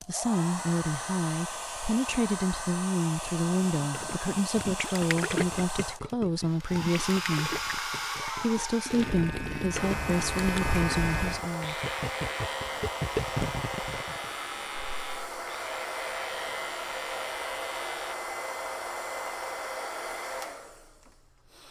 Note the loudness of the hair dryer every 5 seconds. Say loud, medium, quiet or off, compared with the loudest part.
loud, loud, loud, loud, medium.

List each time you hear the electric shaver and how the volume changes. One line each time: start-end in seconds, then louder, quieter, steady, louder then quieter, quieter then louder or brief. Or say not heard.
8.9-18.1 quieter.